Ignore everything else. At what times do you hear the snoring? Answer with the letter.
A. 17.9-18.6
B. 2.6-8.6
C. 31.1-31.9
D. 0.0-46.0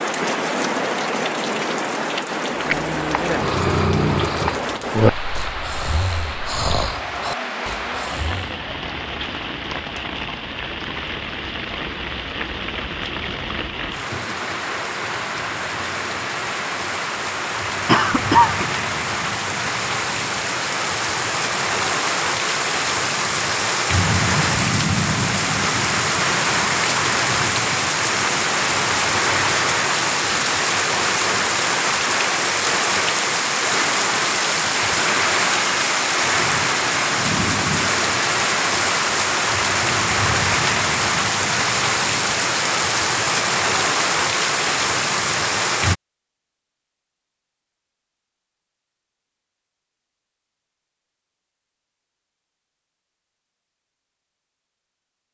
B.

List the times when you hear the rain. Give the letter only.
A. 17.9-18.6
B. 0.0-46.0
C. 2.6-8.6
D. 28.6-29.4
B.